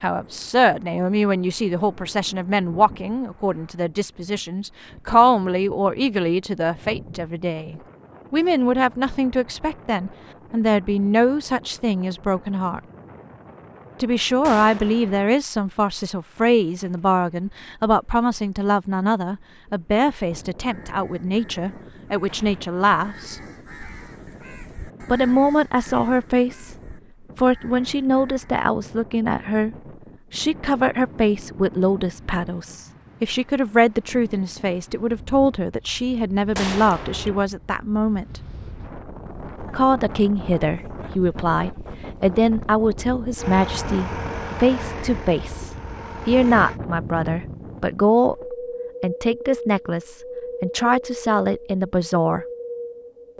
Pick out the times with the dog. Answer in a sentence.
You can't hear the dog here.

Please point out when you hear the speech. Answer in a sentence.
The speech can be heard from 0.0 to 12.8 s, from 14.0 to 23.4 s, from 25.1 to 26.8 s, from 27.4 to 38.4 s and from 39.7 to 52.5 s.